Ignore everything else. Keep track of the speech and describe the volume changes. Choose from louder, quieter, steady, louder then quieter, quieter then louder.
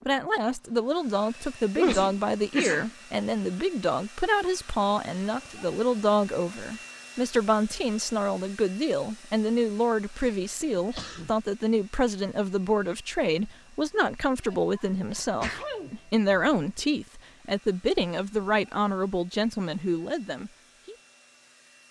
steady.